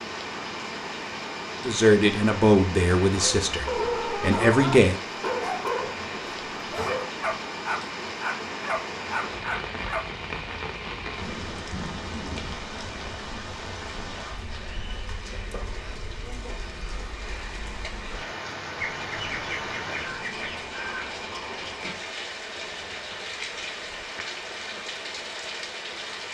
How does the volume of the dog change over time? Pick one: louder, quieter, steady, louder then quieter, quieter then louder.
steady.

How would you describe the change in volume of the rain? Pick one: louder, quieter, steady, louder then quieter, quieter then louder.
steady.